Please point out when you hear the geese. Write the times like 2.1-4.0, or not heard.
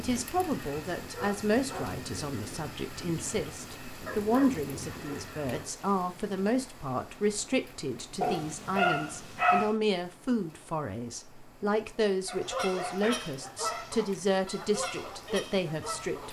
0.0-5.7, 12.4-16.2.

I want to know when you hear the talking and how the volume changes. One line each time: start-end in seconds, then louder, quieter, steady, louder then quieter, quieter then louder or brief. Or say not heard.
0.0-16.2 steady.